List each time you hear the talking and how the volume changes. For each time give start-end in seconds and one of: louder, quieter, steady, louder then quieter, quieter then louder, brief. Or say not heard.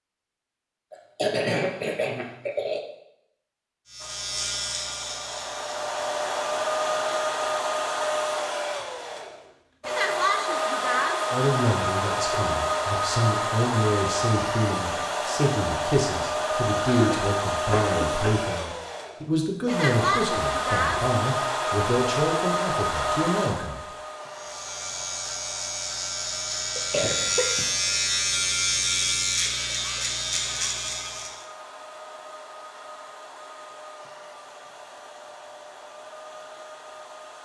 11.3-23.8 steady.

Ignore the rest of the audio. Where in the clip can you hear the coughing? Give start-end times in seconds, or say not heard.
0.9-2.8, 16.9-18.4, 26.8-27.9.